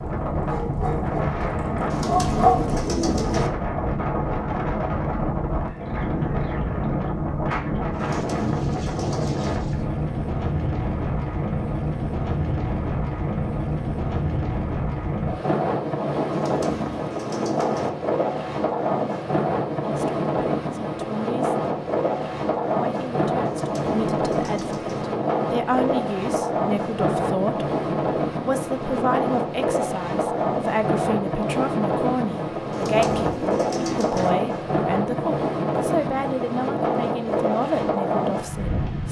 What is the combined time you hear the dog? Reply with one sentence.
You can hear the dog for 2 seconds altogether.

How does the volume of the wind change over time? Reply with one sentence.
The loudness of the wind stays about the same.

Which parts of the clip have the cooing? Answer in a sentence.
The cooing can be heard from 1.9 to 3.5 s, from 8.0 to 9.6 s, from 16.3 to 17.9 s, from 23.4 to 25.1 s and from 32.7 to 34.3 s.